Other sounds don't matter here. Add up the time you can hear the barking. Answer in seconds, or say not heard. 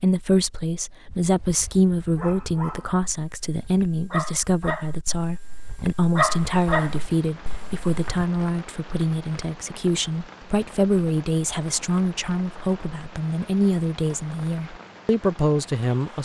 7 s.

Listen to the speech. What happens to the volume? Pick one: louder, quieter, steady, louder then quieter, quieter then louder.
steady.